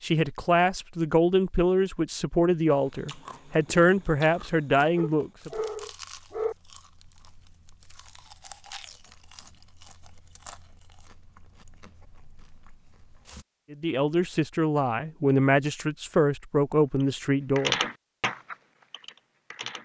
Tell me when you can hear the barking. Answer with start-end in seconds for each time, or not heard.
5.0-6.5.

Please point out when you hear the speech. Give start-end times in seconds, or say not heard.
0.0-5.5, 13.7-17.8.